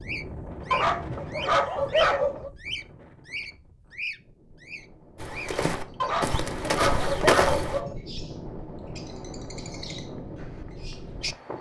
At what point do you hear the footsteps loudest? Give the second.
7 s.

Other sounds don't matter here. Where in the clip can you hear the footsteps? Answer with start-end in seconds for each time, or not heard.
5.2-7.8.